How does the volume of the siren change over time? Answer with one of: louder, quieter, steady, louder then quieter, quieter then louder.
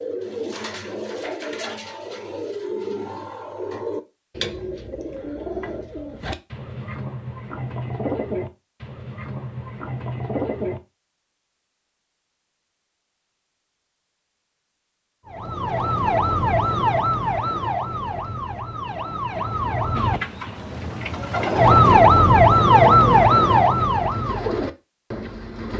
quieter then louder.